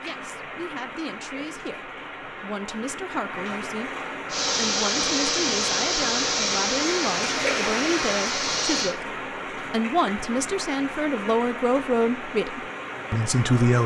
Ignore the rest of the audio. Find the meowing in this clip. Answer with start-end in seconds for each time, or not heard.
not heard.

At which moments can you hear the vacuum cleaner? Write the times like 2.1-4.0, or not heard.
4.2-8.9.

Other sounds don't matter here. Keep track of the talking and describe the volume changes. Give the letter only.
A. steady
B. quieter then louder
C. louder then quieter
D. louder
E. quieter
D.